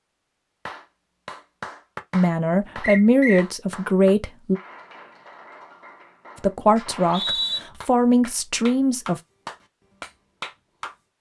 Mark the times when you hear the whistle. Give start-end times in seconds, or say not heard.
2.8-3.5, 6.8-7.6.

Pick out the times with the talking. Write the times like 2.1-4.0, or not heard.
2.1-4.6, 6.4-9.2.